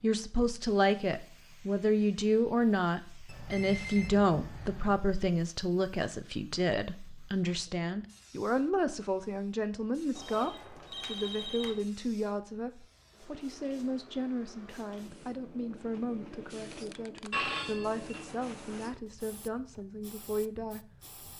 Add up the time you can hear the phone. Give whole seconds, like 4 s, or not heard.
4 s.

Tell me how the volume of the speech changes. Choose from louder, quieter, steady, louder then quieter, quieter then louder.
quieter.